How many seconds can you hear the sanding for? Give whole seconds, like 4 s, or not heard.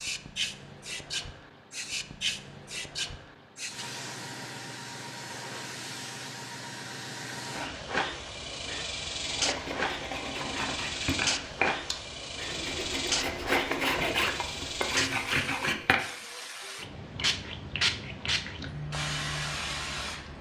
7 s.